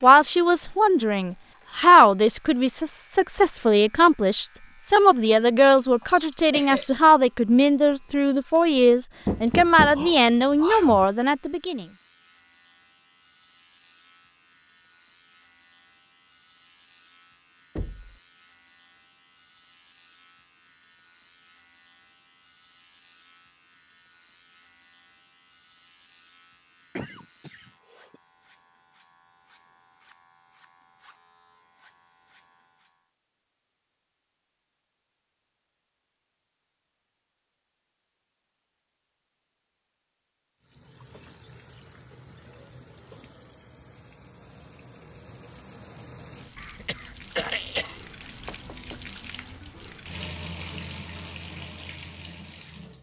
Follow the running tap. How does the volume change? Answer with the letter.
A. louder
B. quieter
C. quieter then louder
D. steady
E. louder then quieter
A.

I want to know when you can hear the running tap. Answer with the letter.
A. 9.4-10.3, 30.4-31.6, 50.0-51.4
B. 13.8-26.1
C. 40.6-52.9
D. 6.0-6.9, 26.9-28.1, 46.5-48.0
C.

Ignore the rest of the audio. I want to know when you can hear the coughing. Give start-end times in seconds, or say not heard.
6.0-6.9, 26.9-28.1, 46.5-48.0.